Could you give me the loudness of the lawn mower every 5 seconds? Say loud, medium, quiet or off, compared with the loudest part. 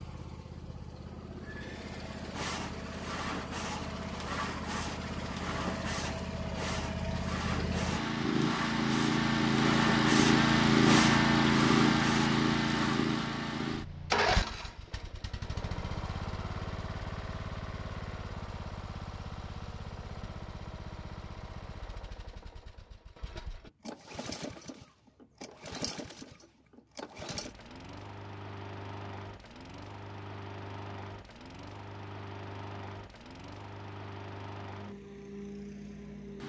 quiet, medium, loud, quiet, quiet, quiet, quiet, quiet.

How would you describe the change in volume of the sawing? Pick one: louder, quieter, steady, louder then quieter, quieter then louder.
louder.